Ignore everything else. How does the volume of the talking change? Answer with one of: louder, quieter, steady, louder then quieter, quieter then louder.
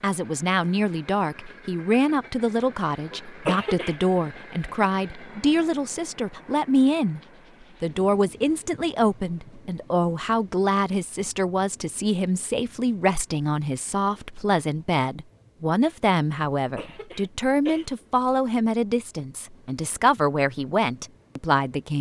steady.